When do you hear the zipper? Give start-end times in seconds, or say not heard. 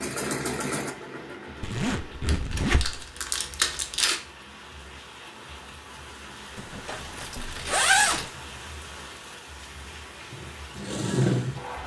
1.6-3.0, 6.5-8.3.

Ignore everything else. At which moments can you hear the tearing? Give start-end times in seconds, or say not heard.
2.2-4.2, 7.2-8.3.